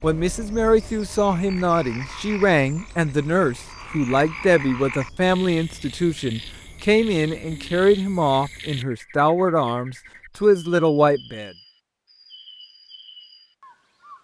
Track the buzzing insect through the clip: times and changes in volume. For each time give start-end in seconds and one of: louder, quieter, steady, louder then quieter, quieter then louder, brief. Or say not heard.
not heard.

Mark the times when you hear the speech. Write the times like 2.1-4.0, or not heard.
0.0-11.5.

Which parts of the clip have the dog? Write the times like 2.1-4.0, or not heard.
not heard.